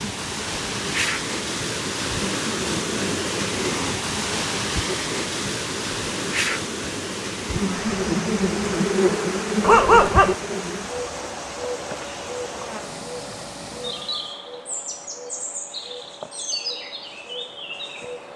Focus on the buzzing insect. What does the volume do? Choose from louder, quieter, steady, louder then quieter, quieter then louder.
louder then quieter.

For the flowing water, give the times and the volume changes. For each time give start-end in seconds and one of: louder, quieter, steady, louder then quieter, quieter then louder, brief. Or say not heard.
0.0-14.4 quieter.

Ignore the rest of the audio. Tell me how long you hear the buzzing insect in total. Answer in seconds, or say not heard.
18 s.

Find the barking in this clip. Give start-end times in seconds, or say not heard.
9.6-10.3.